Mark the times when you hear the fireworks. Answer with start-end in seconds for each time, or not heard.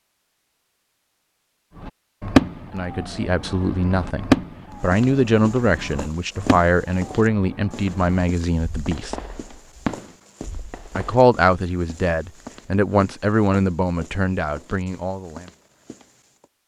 1.8-11.3.